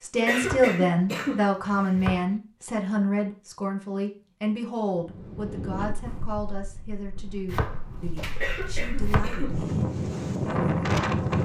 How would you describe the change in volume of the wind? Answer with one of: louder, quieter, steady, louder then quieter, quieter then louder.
quieter then louder.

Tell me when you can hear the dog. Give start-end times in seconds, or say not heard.
not heard.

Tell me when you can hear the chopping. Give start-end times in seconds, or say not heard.
0.4-2.3, 7.5-9.2.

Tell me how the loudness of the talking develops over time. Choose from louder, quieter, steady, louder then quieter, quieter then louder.
quieter.